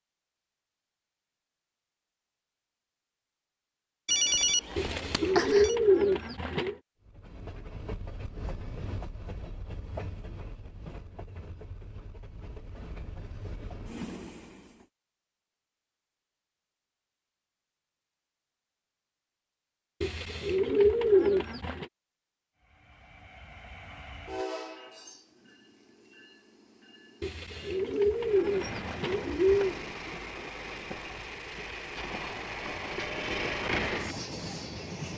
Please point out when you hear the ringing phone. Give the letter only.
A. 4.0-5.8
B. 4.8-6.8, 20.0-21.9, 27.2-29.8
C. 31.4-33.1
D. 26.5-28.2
A.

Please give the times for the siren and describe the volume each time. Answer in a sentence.
You can't hear the siren here.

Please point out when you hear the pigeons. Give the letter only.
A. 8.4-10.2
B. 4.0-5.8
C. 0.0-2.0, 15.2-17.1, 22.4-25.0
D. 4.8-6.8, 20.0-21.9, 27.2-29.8
D.